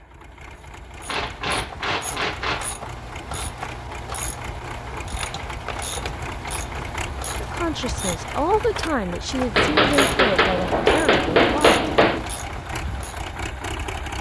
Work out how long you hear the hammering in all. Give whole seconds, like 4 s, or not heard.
6 s.